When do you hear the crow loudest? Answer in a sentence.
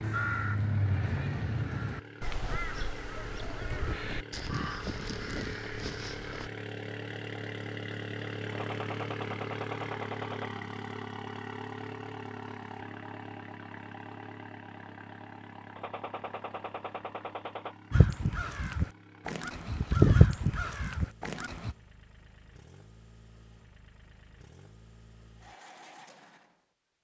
The loudest moment of the crow is at 20 seconds.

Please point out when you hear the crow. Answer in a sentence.
The crow can be heard from 0.0 to 6.5 s and from 17.9 to 21.8 s.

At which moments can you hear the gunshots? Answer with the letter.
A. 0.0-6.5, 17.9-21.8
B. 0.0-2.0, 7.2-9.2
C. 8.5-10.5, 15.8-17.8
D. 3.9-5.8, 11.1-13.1
C.